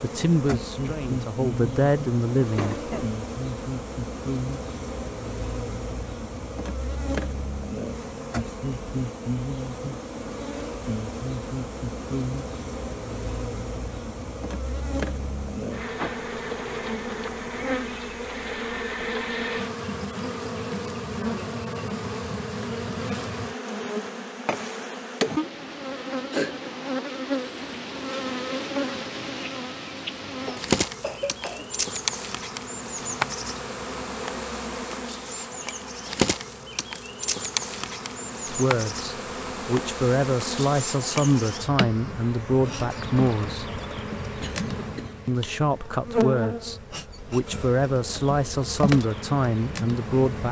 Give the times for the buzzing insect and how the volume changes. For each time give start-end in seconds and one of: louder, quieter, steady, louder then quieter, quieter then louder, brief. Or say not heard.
0.0-50.4 steady.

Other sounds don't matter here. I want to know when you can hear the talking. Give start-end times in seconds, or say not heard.
0.0-2.9, 38.5-43.8, 45.2-50.4.